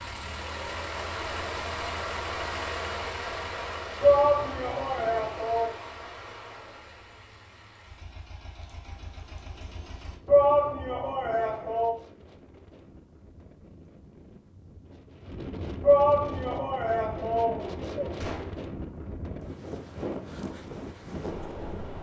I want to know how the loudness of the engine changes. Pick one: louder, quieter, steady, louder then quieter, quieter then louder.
quieter.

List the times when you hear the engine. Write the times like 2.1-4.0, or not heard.
0.0-10.2.